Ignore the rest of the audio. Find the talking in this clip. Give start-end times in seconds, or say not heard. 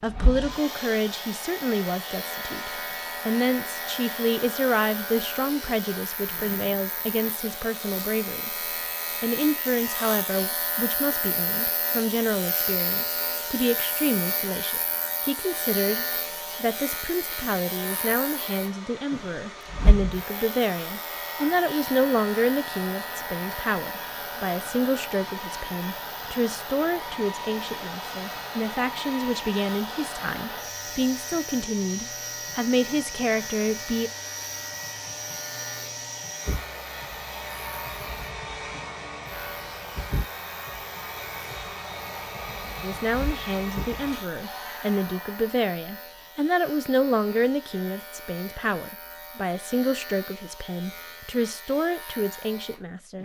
0.0-34.1, 42.8-53.2.